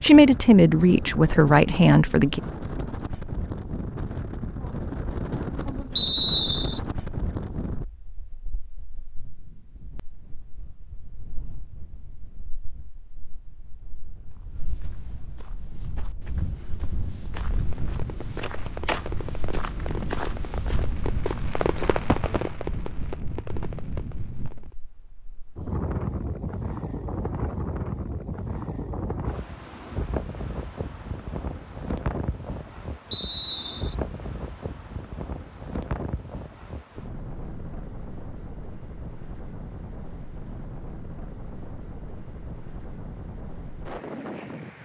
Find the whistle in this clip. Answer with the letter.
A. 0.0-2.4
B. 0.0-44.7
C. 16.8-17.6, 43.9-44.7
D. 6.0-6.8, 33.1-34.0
D.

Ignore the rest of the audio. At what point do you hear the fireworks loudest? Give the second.
22 s.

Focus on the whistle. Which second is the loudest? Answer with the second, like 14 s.
6 s.